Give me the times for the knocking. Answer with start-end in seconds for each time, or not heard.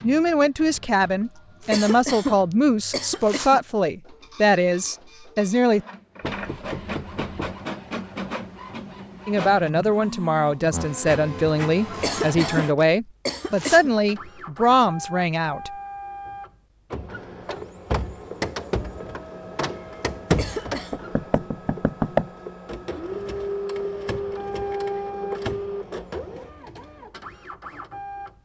6.3-7.3, 20.9-22.3.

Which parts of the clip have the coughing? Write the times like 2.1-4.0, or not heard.
1.6-3.6, 11.9-13.9, 20.3-21.0.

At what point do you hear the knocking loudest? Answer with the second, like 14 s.
22 s.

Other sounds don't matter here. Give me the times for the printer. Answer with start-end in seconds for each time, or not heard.
0.0-28.4.